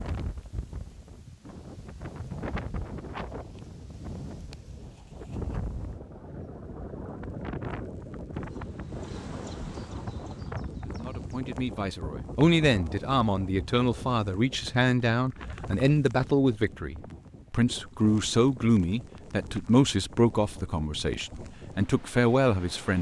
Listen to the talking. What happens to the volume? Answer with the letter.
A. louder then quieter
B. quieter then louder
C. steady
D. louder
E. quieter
C.